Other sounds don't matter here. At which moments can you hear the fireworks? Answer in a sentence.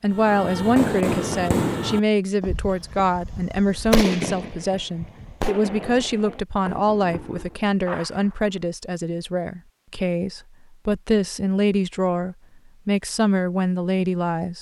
You can hear the fireworks from 0.1 to 8.4 s.